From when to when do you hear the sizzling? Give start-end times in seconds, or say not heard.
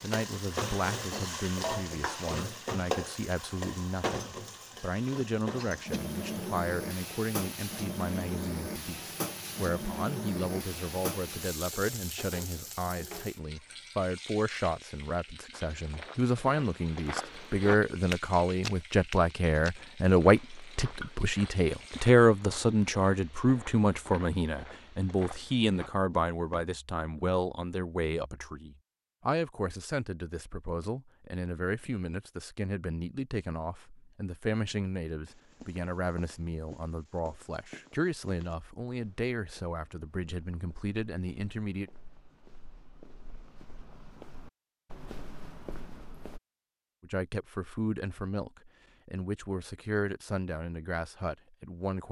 0.0-22.1.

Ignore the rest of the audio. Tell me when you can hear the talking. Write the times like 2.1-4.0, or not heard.
0.0-41.9, 47.0-52.0.